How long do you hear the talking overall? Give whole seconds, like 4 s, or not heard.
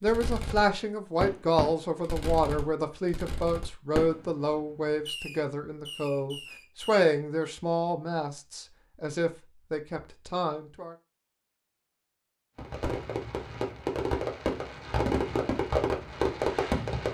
11 s.